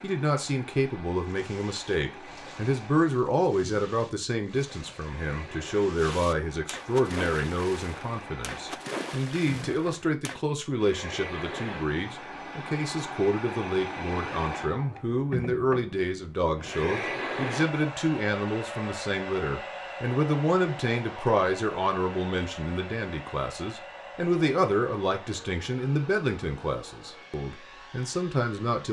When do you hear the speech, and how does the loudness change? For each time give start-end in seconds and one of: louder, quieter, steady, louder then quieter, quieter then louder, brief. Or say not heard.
0.0-28.8 steady.